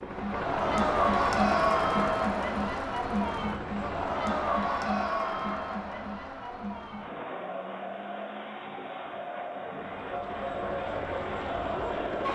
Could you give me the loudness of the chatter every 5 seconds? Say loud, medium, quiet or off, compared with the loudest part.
loud, medium, medium.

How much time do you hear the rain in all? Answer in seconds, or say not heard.
not heard.